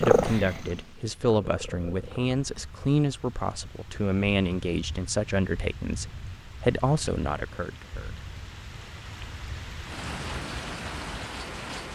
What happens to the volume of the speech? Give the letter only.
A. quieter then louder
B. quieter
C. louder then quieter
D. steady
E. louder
D.